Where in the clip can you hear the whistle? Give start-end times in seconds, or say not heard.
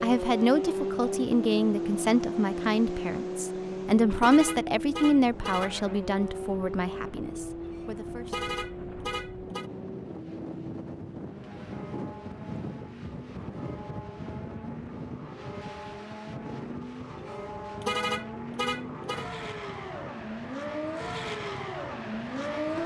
not heard.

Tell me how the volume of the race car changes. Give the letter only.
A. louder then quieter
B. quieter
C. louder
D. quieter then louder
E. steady
D.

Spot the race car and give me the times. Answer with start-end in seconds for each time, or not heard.
0.0-22.8.